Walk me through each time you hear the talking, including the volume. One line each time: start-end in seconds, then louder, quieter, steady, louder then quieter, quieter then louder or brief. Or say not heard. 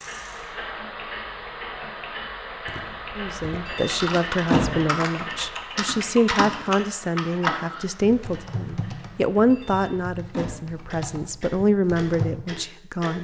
3.1-13.1 steady.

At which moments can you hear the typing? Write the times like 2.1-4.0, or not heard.
2.6-12.3.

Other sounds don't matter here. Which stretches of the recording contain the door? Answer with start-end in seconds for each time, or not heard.
3.6-5.0, 9.5-10.8.